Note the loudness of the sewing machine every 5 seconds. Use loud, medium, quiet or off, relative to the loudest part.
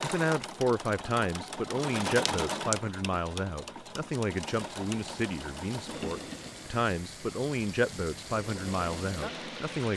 loud, medium.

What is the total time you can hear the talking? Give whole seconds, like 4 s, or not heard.
10 s.